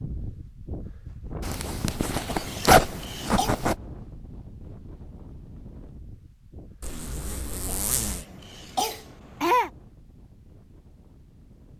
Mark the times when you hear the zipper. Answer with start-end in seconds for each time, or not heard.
1.4-3.8, 6.8-8.2.